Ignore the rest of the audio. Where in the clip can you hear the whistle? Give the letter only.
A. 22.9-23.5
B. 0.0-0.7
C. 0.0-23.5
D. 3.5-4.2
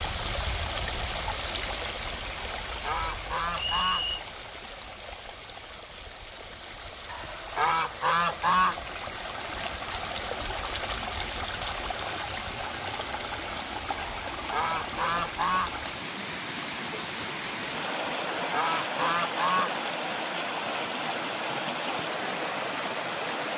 D.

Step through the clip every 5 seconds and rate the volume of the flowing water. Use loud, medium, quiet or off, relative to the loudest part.
loud, medium, loud, loud, loud.